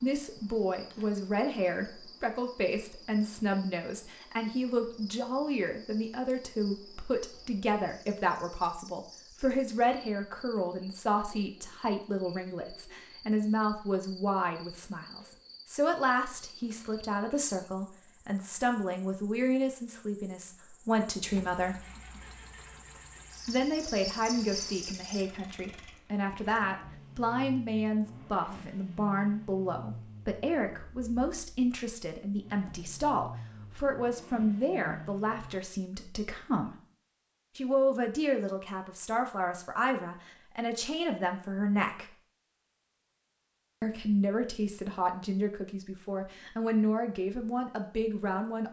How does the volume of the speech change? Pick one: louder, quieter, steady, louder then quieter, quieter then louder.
steady.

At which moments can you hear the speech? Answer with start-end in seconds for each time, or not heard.
0.0-21.9, 23.4-36.8, 37.5-42.1, 43.8-48.6.